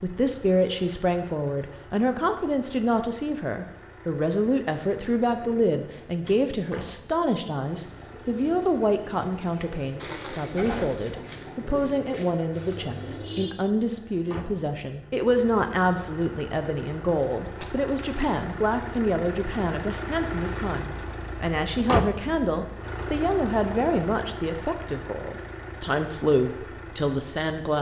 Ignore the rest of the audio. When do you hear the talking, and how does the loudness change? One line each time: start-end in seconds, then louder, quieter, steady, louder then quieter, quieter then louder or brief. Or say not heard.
0.0-27.7 steady.